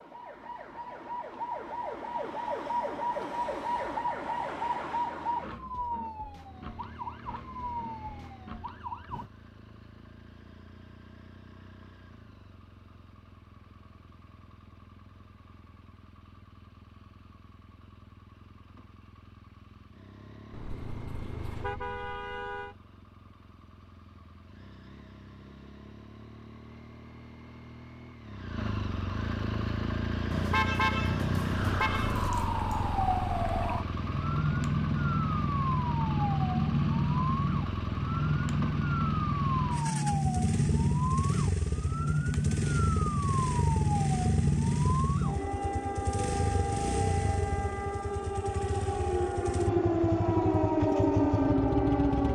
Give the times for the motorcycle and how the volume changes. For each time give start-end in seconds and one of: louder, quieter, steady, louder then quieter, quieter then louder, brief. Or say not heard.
6.3-52.2 louder.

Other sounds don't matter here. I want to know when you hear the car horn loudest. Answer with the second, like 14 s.
31 s.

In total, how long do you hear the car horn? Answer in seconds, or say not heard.
4 s.